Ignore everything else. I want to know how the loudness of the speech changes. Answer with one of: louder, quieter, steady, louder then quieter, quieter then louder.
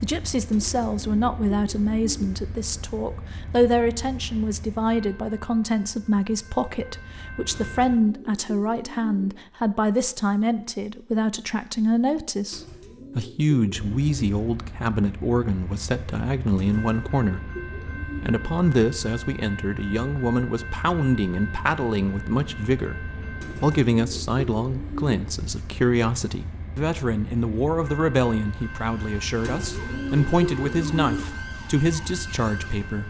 steady.